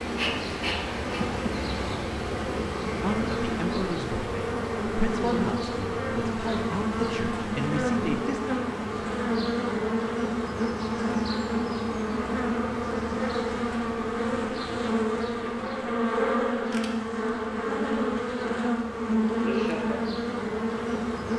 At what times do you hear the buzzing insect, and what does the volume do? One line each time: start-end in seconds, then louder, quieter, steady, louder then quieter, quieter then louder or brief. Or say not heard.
0.0-21.3 steady.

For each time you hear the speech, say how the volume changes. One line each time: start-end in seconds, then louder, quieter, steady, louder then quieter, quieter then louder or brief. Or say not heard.
3.0-8.4 steady.